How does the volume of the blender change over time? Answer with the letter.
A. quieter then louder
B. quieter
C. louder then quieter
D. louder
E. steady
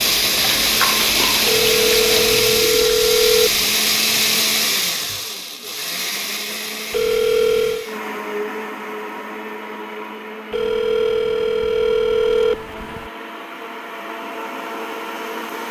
B.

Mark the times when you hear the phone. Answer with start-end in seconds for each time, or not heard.
1.4-3.6, 6.9-7.8, 10.5-13.1.